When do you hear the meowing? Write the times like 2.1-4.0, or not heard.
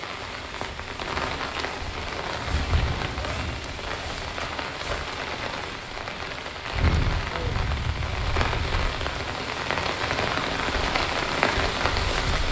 2.5-3.8.